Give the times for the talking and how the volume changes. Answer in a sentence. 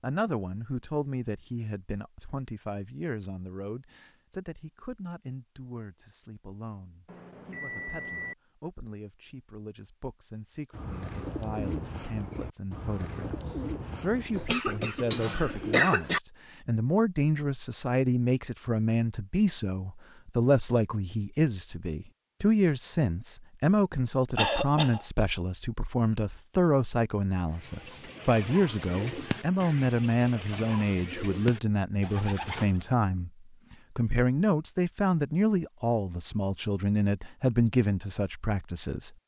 You can hear the talking from 0.0 to 39.1 s, getting louder.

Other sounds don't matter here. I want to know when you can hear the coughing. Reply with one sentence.
The coughing can be heard from 14.3 to 16.2 s and from 24.4 to 25.1 s.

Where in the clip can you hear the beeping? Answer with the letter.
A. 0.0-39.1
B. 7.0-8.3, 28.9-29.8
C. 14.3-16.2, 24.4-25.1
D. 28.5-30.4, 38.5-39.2
B.